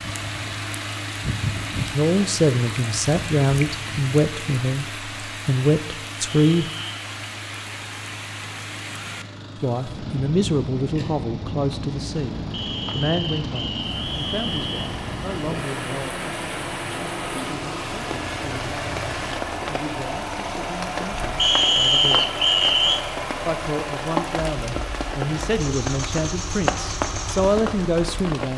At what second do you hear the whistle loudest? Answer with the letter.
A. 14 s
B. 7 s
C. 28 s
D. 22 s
D.